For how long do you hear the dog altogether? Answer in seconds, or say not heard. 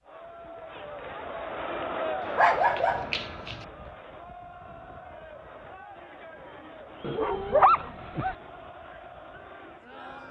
3 s.